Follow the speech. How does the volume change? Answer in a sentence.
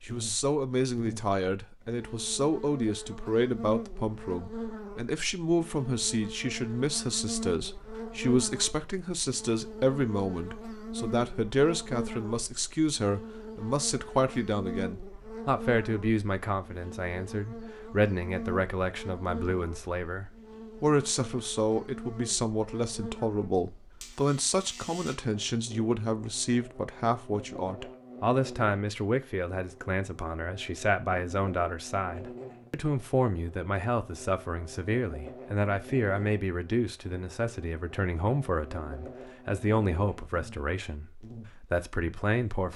The volume of the speech stays about the same.